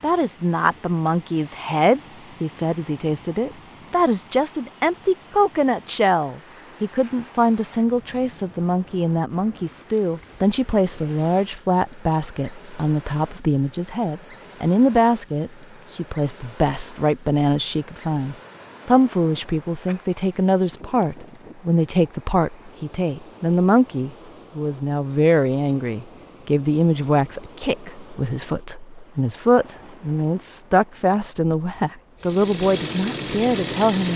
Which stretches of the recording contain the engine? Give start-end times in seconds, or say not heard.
32.2-34.1.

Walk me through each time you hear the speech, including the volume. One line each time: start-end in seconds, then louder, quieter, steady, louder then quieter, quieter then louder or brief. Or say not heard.
0.0-34.1 steady.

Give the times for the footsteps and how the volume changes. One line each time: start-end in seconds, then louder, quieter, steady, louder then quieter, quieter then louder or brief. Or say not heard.
not heard.